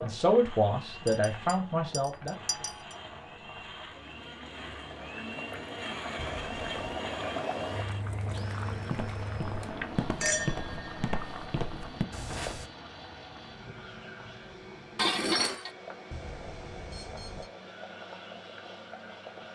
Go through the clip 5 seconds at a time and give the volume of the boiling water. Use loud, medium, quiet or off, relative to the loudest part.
medium, loud, medium, medium.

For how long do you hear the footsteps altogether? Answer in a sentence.
The footsteps can be heard for 4 seconds in total.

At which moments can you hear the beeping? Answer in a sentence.
The beeping can be heard from 6.2 to 7.0 s and from 16.1 to 17.5 s.